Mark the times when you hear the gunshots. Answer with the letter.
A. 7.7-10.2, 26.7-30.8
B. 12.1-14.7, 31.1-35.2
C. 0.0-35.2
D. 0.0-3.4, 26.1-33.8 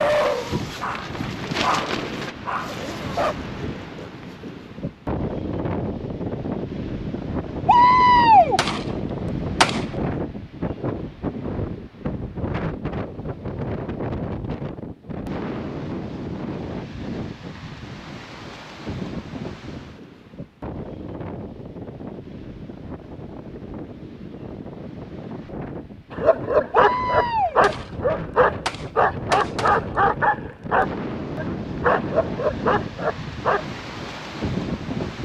A.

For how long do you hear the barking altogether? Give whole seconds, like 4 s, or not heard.
11 s.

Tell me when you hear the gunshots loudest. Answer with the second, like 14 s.
8 s.